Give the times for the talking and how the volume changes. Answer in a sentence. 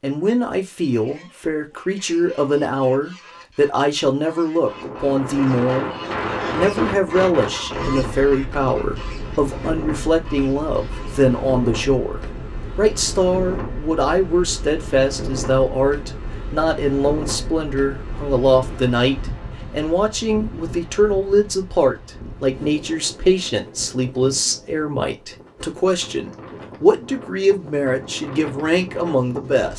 You can hear the talking from 0.0 to 29.7 s, at a steady volume.